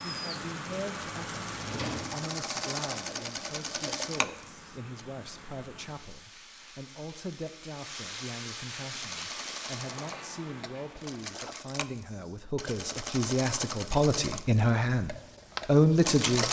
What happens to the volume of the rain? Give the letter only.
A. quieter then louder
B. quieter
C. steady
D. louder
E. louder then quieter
A.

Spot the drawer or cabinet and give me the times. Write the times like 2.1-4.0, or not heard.
1.6-2.1.